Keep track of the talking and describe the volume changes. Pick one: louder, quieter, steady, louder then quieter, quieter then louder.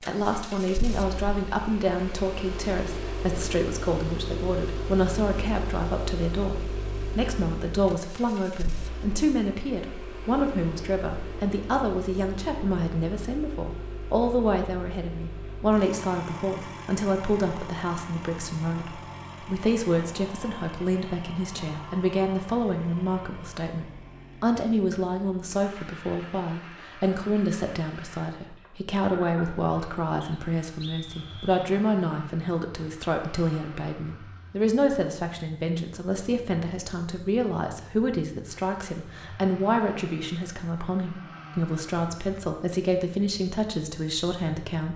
steady.